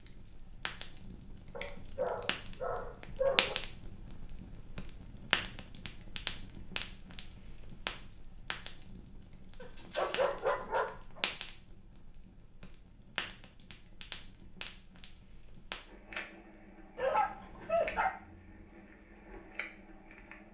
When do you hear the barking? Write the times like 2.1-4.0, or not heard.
1.6-3.5, 9.6-11.2, 16.9-18.1.